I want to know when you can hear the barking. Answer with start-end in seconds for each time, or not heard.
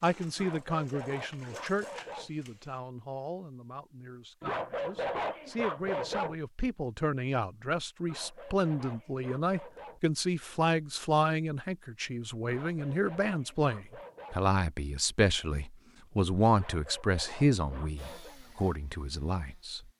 0.3-2.3, 4.4-6.3, 8.1-10.0, 12.4-14.4, 16.5-18.4.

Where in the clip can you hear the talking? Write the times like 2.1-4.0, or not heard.
0.0-19.9.